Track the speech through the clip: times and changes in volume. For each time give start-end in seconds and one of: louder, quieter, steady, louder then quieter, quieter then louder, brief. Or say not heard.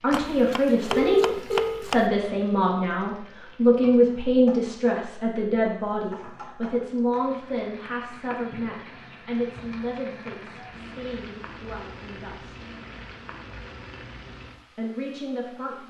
0.0-12.7 quieter
14.8-15.8 brief.